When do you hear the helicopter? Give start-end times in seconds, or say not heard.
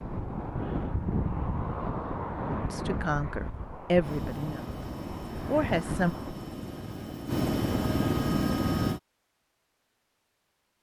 4.0-9.0.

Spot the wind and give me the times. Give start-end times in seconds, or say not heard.
0.0-6.5.